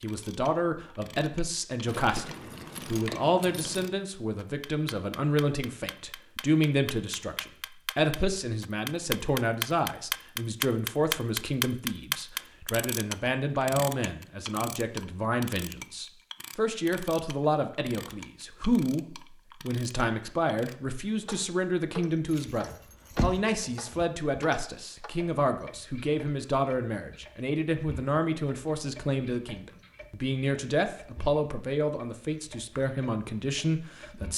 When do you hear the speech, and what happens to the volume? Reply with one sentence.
You can hear the speech from 0.0 to 34.3 s, at a steady volume.